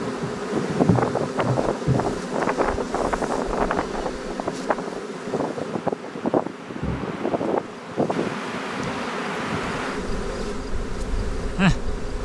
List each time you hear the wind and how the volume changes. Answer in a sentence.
You can hear the wind from 0.0 to 12.2 s, getting quieter.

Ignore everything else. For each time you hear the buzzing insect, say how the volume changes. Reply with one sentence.
You can hear the buzzing insect from 0.0 to 12.2 s, getting quieter then louder.